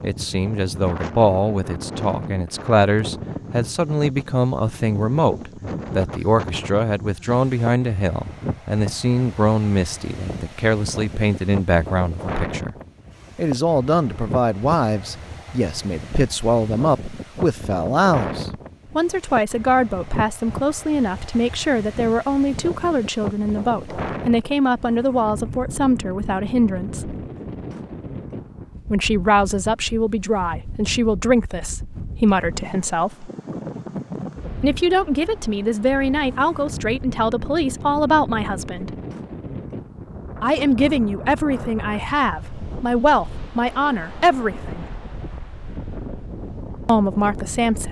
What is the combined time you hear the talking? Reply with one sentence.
You can hear the talking for 41 seconds altogether.